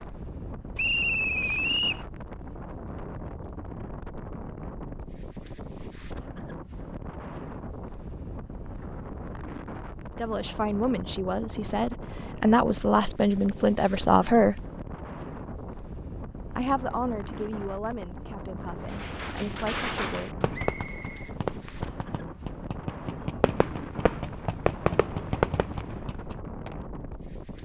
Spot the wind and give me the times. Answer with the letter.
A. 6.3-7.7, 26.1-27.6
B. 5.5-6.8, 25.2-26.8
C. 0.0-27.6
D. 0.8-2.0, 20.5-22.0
C.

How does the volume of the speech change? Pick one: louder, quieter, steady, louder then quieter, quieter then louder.
louder then quieter.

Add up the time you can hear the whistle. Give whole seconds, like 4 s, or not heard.
3 s.